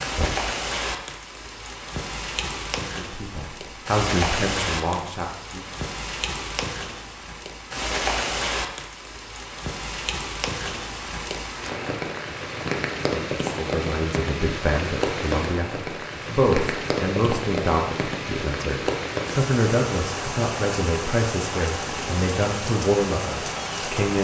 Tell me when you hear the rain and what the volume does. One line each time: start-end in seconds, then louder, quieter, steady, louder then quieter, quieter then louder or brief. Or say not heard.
0.0-24.1 steady.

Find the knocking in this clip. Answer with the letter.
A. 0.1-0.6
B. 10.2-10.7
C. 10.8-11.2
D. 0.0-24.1
A.